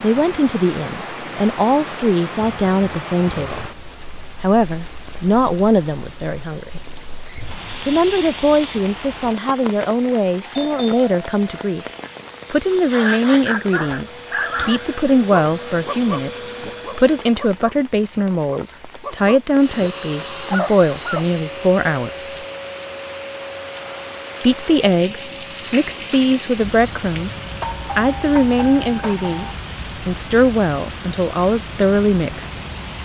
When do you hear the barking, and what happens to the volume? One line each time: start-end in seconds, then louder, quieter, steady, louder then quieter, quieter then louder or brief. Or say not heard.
12.9-21.2 quieter then louder.